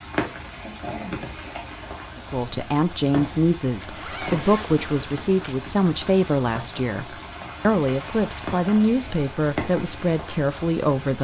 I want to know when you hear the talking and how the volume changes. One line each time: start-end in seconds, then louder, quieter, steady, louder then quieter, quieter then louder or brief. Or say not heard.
2.3-11.2 steady.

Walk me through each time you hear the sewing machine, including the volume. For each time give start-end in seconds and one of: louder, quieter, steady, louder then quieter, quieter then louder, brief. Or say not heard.
not heard.